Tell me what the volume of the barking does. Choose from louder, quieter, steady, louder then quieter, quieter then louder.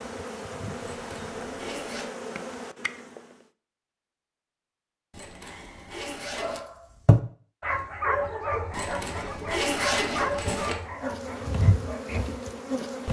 louder then quieter.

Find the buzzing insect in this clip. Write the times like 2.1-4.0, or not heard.
0.0-3.5, 10.8-13.0.